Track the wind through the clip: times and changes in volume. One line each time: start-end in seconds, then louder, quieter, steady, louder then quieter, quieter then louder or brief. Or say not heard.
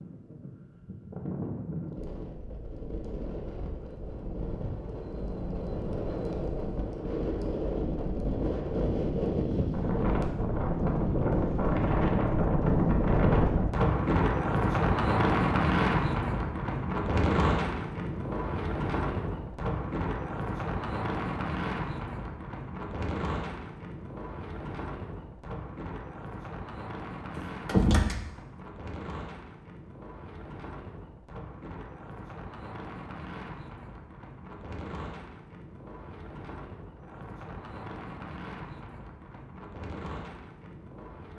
0.0-41.3 louder then quieter.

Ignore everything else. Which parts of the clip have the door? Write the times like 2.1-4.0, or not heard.
27.4-28.2.